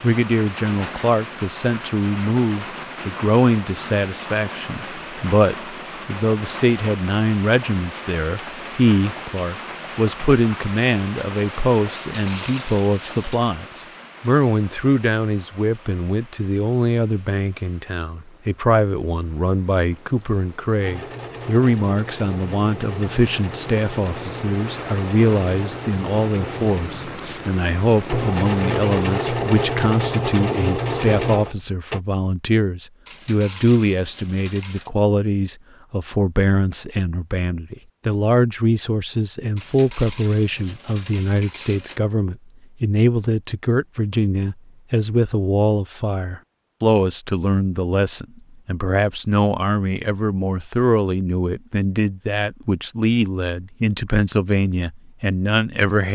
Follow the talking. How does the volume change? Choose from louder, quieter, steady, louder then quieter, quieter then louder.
steady.